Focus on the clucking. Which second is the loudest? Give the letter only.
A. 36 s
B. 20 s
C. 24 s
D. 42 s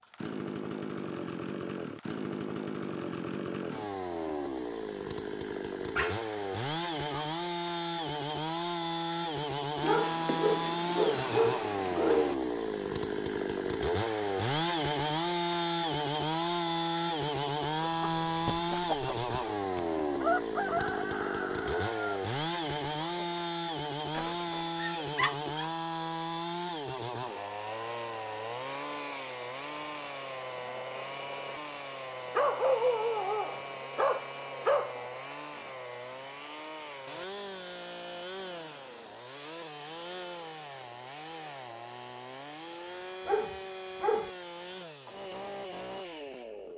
B.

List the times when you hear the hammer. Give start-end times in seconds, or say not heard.
not heard.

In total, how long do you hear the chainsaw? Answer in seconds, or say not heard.
47 s.